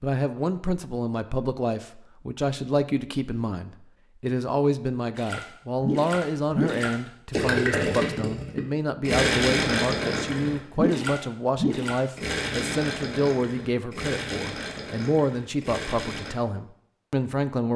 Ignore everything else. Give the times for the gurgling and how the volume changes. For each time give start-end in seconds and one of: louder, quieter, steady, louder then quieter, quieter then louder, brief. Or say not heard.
5.2-16.4 quieter.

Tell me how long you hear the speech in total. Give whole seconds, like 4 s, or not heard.
18 s.